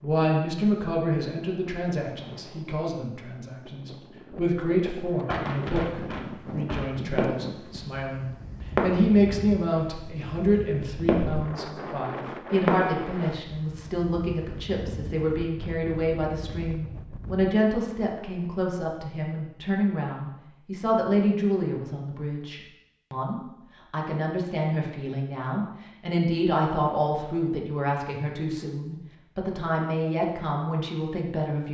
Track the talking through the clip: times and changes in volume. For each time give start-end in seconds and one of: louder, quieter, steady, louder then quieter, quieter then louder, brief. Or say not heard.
0.0-31.6 steady.